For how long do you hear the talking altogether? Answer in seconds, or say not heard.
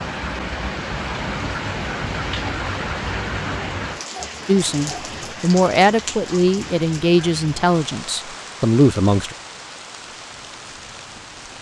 5 s.